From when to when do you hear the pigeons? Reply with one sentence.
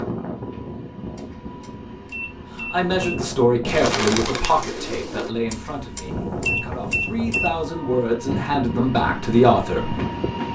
The pigeons can be heard from 3.6 to 5.3 s.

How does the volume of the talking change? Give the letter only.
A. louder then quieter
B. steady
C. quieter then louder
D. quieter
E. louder
C.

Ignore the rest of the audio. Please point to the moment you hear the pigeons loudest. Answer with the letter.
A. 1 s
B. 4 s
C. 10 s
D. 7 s
B.